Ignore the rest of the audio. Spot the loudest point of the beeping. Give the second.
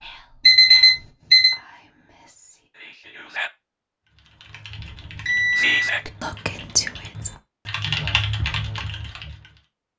1 s.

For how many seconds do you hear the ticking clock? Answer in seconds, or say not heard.
not heard.